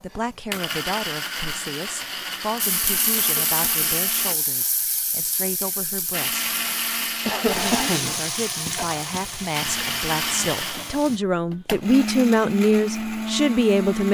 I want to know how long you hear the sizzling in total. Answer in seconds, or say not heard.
9 s.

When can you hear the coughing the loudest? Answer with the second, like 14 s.
8 s.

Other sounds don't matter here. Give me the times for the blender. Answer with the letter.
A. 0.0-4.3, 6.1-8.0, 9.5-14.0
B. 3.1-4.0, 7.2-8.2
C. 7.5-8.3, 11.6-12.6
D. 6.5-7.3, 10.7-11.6
A.